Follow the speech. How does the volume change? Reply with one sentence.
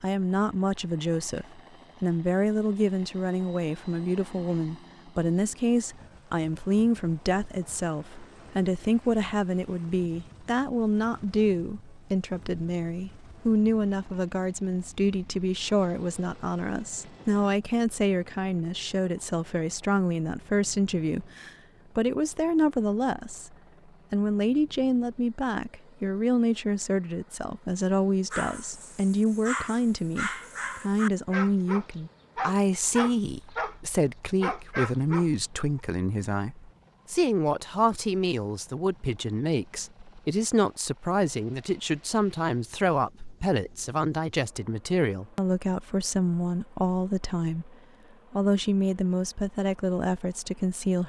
The volume of the speech stays about the same.